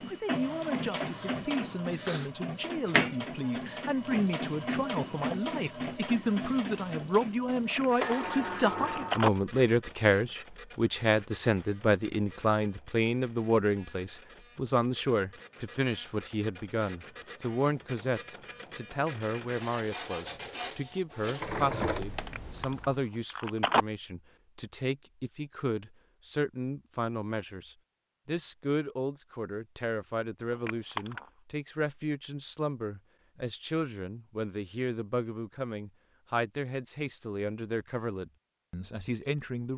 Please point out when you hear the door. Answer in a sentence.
You can hear the door from 8.0 to 9.2 s.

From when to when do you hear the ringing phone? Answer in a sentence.
The ringing phone can be heard from 7.8 to 9.3 s, from 22.3 to 23.9 s and from 30.5 to 31.2 s.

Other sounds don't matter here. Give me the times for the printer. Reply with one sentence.
You can hear the printer from 0.0 to 23.0 s.